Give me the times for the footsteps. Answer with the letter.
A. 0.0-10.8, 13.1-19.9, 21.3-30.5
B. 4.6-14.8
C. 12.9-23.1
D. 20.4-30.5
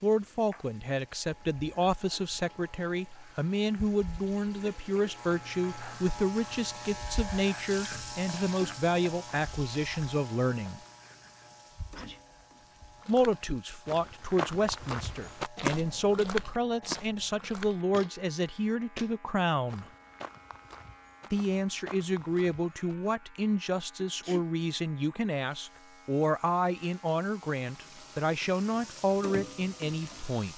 C.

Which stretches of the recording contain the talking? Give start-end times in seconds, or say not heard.
0.0-10.8, 13.1-19.9, 21.3-30.5.